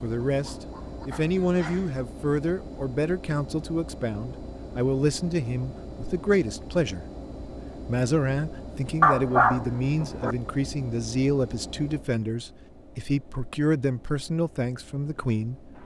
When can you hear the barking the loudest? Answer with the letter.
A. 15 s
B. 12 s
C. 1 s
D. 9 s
D.